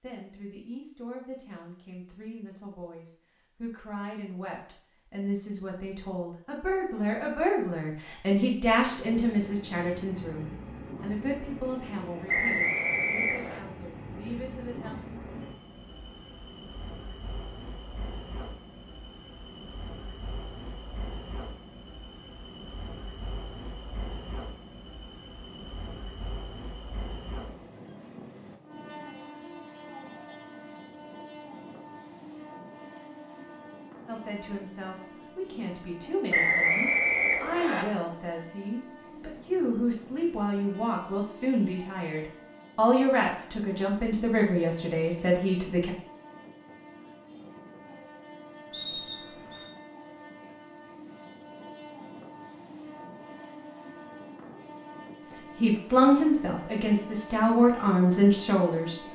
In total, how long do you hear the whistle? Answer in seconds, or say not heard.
4 s.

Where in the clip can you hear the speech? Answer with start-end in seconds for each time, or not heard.
0.0-14.9, 34.0-45.9, 55.2-59.0.